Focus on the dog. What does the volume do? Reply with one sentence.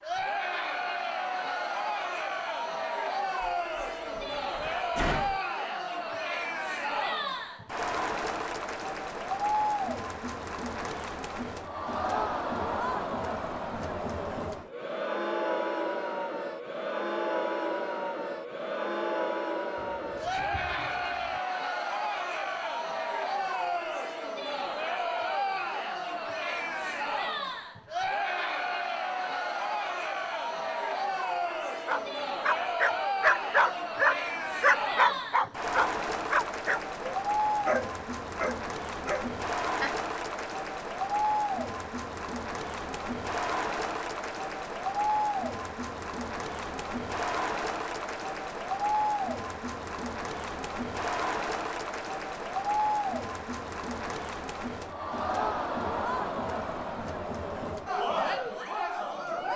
The volume of the dog goes down.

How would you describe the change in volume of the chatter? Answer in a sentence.
The loudness of the chatter stays about the same.